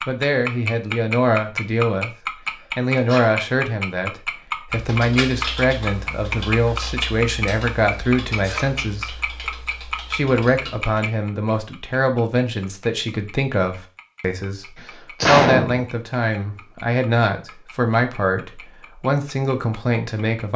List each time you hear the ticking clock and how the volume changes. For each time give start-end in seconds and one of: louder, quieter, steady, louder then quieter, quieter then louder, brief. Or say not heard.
0.0-20.4 quieter.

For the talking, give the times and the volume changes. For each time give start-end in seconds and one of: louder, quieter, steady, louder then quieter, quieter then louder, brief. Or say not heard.
0.1-2.1 brief
2.8-20.5 steady.